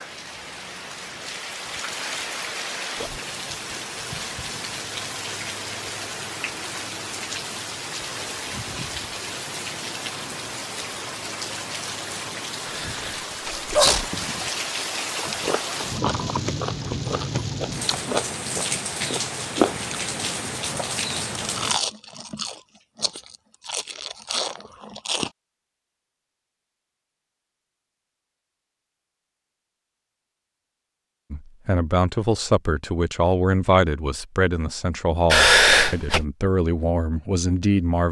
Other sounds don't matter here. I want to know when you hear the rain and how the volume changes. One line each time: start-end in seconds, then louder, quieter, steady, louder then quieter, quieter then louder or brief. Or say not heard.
0.0-21.8 steady.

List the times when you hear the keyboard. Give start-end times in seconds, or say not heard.
not heard.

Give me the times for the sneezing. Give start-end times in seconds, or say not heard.
12.7-14.1, 35.3-36.2.